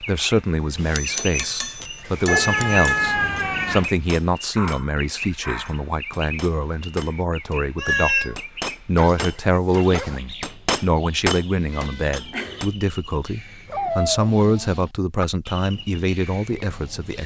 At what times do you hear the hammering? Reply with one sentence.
You can hear the hammering from 0.8 to 12.7 s.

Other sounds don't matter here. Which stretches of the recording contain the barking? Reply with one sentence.
You can hear the barking from 1.1 to 2.5 s, from 4.5 to 5.8 s, from 8.9 to 10.2 s and from 13.7 to 14.8 s.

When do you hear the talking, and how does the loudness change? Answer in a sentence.
The talking can be heard from 0.0 to 17.2 s, at a steady volume.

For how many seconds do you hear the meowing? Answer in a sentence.
You can hear the meowing for 3 seconds altogether.